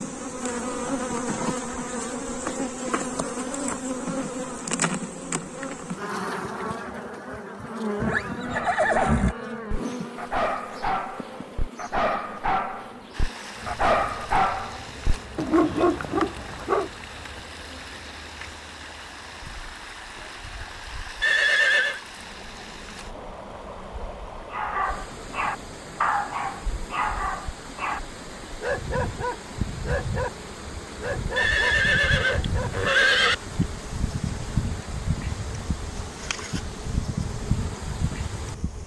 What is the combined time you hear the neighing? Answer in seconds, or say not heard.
4 s.